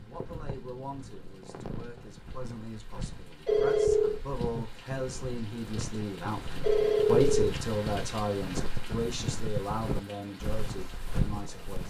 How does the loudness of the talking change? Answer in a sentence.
The loudness of the talking goes up, then down.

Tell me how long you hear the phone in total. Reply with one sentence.
You can hear the phone for 2 seconds altogether.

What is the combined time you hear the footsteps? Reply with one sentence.
You can hear the footsteps for 12 seconds altogether.